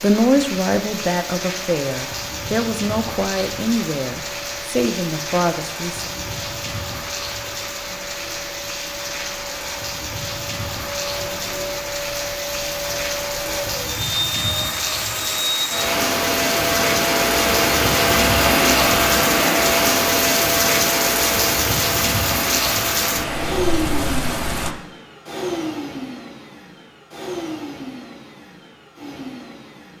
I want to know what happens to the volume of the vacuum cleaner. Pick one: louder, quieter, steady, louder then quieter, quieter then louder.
louder then quieter.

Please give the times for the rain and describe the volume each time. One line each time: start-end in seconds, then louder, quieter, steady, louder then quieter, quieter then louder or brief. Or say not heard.
0.0-24.8 louder.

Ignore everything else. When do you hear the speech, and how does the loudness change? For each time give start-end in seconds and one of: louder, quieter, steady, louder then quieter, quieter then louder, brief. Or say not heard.
0.0-6.1 steady.